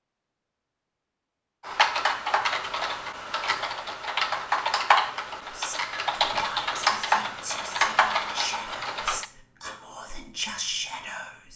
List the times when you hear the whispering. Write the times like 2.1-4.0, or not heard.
5.5-11.5.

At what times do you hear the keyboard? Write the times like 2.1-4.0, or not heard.
1.6-9.2.